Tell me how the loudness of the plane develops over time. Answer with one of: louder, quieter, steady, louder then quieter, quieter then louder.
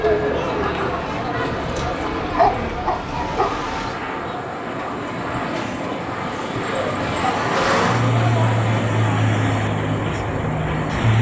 louder.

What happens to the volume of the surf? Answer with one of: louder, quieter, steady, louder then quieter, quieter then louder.
louder.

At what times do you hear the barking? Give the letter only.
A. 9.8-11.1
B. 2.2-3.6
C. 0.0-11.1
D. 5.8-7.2
B.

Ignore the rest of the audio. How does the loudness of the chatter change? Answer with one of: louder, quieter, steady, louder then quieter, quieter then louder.
quieter then louder.